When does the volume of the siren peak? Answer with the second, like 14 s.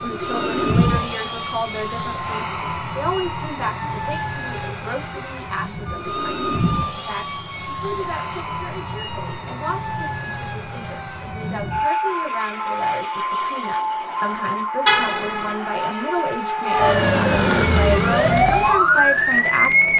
19 s.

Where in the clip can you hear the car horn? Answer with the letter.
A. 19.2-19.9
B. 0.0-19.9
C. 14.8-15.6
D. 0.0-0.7
C.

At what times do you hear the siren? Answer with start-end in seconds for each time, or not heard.
0.0-19.9.